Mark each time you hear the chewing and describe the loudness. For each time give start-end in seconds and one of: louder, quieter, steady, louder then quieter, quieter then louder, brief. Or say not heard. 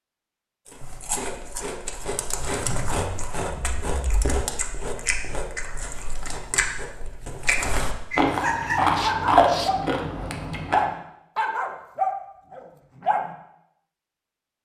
0.7-10.8 louder.